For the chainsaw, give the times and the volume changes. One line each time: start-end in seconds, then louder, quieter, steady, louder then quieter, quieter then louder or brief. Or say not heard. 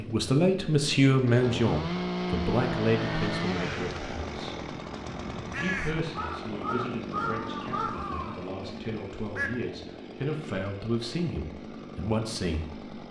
0.0-13.0 quieter.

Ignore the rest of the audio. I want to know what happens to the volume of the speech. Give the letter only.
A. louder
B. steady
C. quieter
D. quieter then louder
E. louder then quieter
D.